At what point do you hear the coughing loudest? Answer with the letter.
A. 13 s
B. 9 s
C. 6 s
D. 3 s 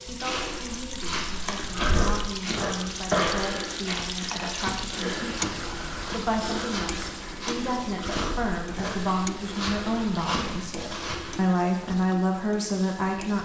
D.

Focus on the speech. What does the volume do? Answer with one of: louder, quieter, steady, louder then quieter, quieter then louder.
louder.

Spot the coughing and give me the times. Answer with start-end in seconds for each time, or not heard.
1.9-3.4, 8.2-9.1.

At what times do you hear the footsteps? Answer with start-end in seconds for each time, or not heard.
0.1-11.4.